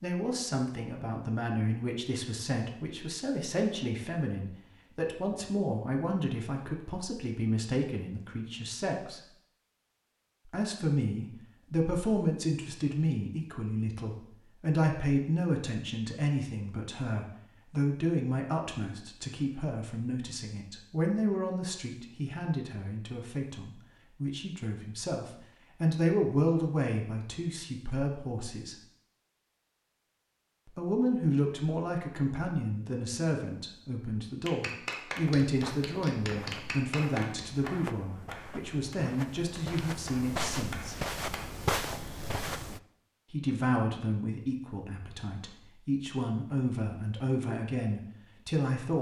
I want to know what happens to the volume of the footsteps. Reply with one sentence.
The volume of the footsteps goes up.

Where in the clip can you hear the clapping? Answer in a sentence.
You can hear the clapping from 34.4 to 41.5 s.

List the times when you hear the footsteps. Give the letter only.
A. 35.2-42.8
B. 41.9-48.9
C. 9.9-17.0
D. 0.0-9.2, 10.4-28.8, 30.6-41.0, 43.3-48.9
A.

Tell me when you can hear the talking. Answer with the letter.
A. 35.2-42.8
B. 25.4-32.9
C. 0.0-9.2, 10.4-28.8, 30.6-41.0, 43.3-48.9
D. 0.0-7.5
C.